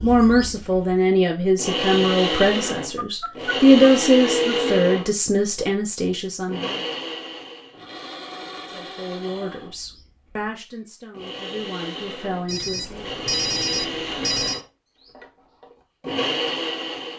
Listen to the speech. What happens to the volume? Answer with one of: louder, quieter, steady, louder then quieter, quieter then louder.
quieter.